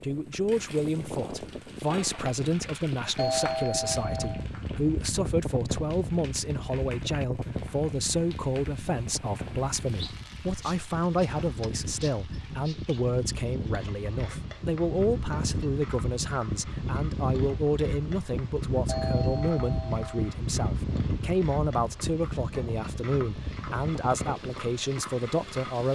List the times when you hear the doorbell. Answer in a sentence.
The doorbell can be heard from 3.1 to 4.5 s and from 18.9 to 20.4 s.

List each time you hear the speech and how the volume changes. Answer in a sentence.
The speech can be heard from 0.0 to 25.9 s, at a steady volume.